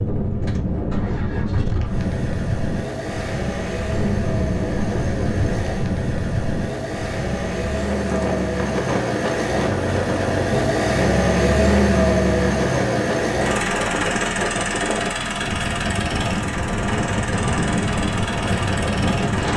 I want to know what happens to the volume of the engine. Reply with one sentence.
The loudness of the engine goes up, then down.